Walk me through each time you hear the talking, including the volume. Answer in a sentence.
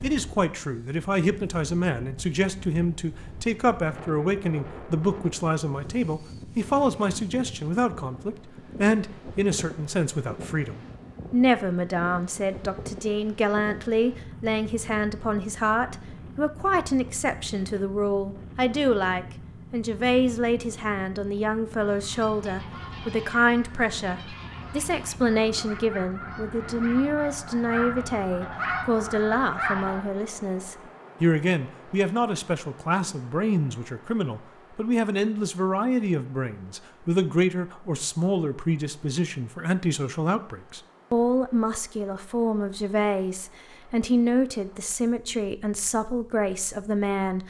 The talking can be heard from 0.0 to 47.4 s, at a steady volume.